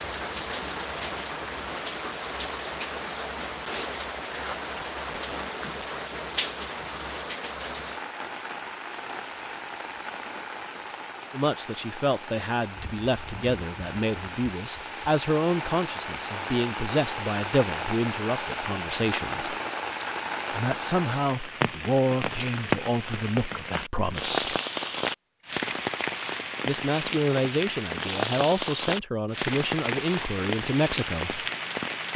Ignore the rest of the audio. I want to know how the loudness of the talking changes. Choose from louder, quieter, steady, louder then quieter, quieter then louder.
steady.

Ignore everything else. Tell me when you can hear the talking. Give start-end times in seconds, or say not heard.
11.3-19.6, 20.5-24.6, 26.6-31.4.